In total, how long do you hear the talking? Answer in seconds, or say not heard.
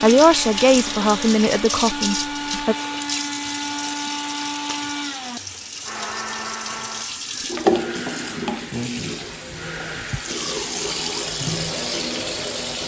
3 s.